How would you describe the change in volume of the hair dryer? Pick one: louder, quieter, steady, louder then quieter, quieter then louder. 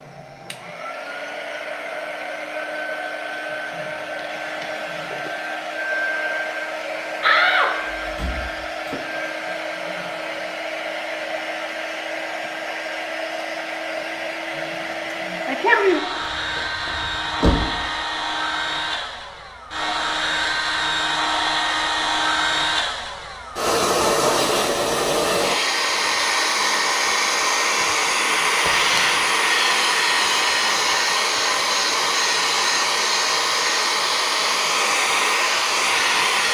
louder.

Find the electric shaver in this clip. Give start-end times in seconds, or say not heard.
not heard.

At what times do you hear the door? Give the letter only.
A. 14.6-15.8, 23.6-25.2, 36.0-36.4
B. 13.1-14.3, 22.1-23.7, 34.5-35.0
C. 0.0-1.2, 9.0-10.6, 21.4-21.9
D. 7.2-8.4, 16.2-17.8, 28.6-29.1
D.